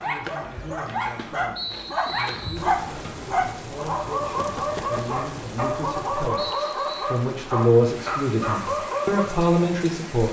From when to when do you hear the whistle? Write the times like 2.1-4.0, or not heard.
1.6-2.6, 6.3-7.1.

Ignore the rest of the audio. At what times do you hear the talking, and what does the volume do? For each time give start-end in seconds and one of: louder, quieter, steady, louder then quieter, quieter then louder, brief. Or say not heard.
0.1-10.2 louder.